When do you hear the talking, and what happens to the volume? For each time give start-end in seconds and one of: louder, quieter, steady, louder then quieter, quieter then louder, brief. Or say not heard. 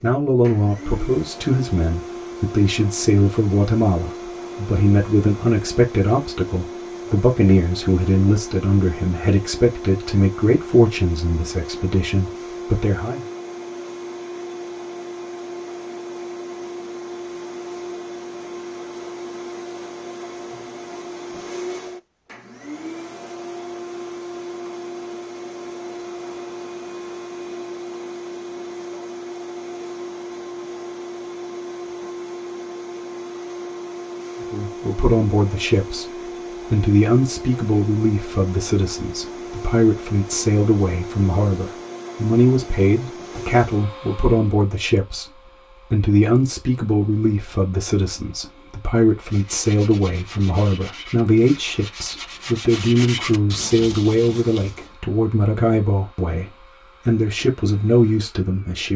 0.0-13.2 steady
34.5-58.9 steady.